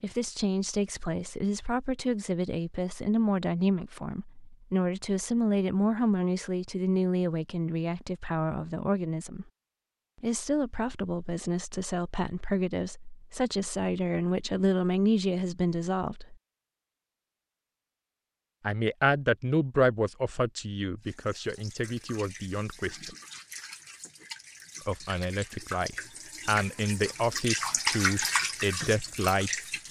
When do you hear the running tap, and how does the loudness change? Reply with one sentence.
You can hear the running tap from 21.0 to 29.8 s, getting louder.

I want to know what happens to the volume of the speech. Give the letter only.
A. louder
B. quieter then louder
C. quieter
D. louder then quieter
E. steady
E.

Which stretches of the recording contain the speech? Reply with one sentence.
You can hear the speech from 0.0 to 9.4 s, from 10.2 to 16.4 s, from 18.6 to 23.1 s and from 24.9 to 29.6 s.